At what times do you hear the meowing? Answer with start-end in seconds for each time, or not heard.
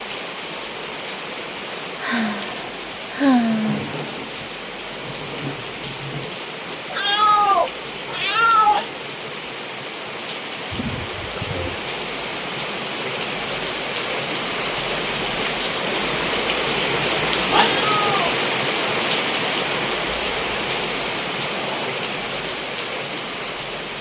6.9-8.8, 17.8-18.4.